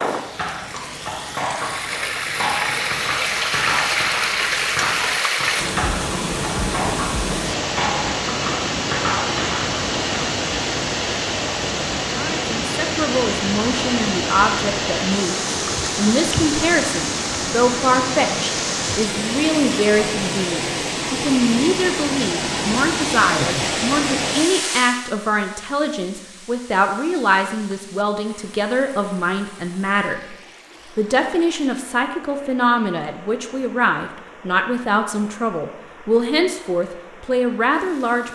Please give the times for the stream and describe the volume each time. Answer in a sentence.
You can hear the stream from 0.0 to 38.3 s, getting quieter.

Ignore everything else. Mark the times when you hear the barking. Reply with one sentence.
The barking can't be heard in this clip.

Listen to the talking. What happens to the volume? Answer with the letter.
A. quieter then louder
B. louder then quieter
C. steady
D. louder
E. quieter
C.